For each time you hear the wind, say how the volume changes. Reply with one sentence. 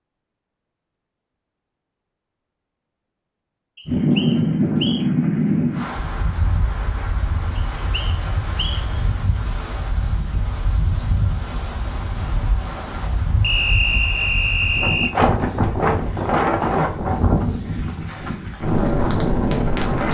The wind can be heard from 3.9 to 20.0 s, getting quieter then louder.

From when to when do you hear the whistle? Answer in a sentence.
The whistle can be heard from 3.8 to 5.0 s, from 7.5 to 8.8 s and from 13.4 to 15.2 s.